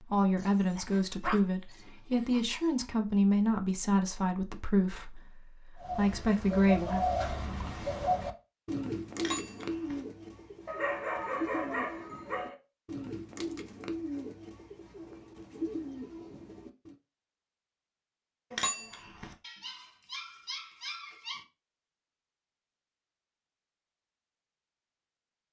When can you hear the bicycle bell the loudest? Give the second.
19 s.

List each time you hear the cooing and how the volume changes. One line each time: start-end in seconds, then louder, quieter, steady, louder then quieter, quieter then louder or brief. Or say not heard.
5.8-16.9 quieter.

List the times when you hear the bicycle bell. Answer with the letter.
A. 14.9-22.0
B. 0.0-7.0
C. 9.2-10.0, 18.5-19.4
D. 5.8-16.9
C.